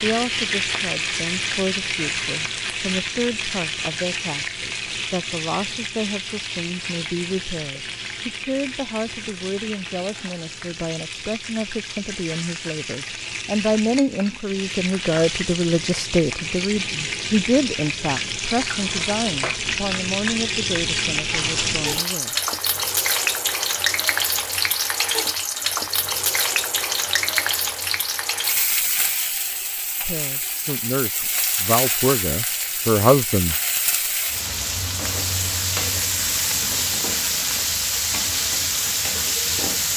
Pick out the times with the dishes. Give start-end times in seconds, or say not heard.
not heard.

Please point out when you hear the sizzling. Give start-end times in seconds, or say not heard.
0.0-39.9.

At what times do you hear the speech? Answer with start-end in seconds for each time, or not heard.
0.0-22.4, 30.0-33.6.